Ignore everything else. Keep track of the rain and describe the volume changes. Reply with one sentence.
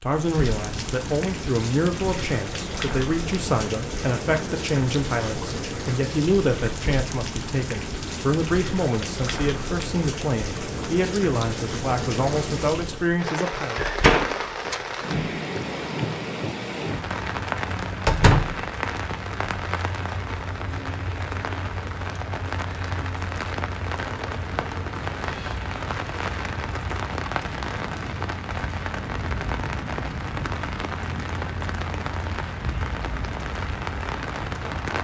The loudness of the rain stays about the same.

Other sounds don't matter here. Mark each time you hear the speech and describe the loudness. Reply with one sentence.
You can hear the speech from 0.0 to 13.8 s, at a steady volume.